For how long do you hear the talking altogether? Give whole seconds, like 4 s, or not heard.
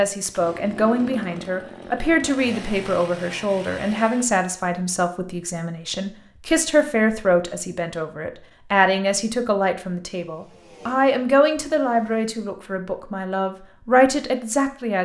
15 s.